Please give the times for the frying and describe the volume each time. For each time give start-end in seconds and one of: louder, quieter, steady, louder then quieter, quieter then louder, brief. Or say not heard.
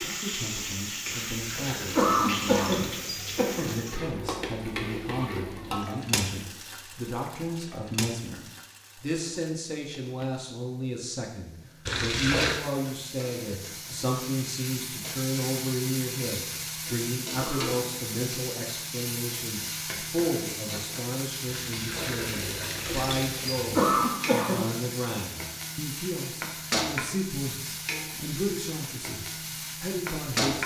0.0-30.6 quieter then louder.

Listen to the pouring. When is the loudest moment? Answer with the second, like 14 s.
12 s.